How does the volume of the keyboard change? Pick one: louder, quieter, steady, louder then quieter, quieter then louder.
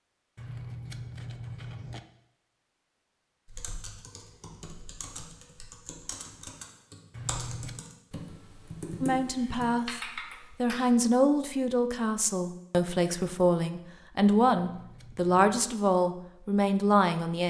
louder.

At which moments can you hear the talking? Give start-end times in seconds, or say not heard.
9.0-17.4.